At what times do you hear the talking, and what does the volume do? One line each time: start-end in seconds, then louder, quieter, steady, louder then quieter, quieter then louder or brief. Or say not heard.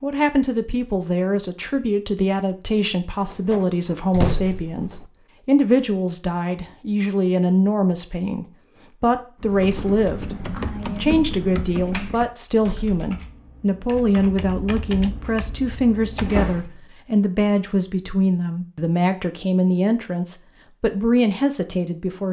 0.0-22.2 steady.